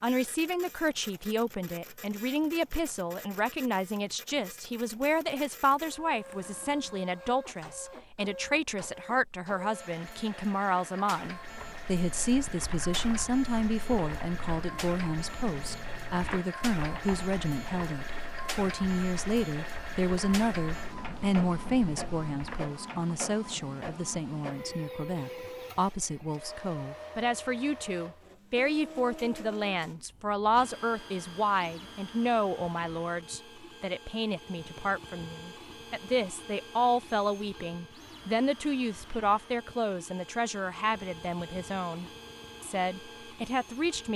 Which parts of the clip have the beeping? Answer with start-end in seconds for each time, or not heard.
not heard.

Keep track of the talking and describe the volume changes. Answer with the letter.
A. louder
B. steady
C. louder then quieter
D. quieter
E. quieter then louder
B.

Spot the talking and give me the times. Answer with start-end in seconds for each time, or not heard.
0.0-44.1.